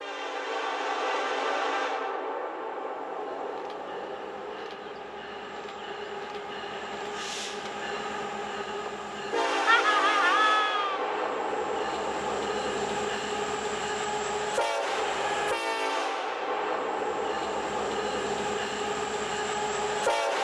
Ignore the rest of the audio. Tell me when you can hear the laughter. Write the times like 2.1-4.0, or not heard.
9.7-11.0.